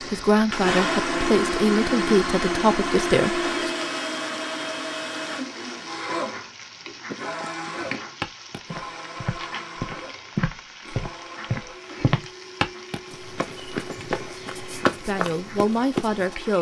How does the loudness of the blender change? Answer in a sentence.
The loudness of the blender goes down.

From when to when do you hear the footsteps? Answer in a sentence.
The footsteps can be heard from 7.0 to 16.4 s.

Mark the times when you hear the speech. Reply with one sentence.
The speech can be heard from 0.0 to 3.5 s and from 15.0 to 16.5 s.